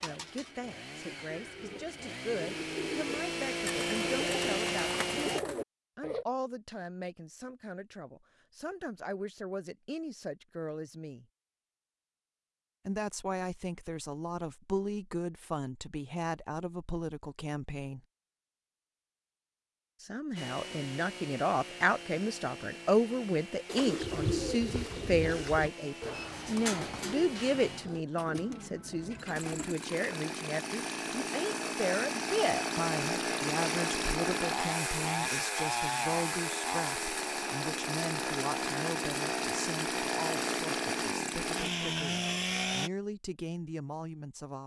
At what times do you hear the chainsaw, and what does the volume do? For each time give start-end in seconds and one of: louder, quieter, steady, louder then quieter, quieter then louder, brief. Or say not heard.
0.0-5.4 louder
20.4-42.9 louder.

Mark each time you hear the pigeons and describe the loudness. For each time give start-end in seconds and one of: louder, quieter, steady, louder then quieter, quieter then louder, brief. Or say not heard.
0.0-6.2 louder
23.6-29.8 quieter.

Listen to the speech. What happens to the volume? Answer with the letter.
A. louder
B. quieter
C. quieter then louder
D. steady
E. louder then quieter
E.